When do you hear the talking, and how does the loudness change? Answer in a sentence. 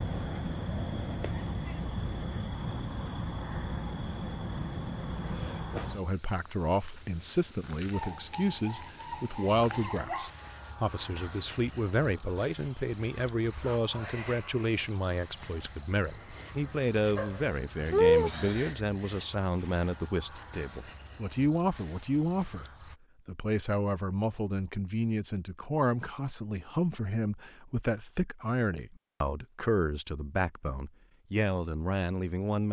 You can hear the talking from 5.9 to 32.6 s, at a steady volume.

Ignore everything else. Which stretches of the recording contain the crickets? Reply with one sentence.
The crickets can be heard from 0.0 to 22.9 s.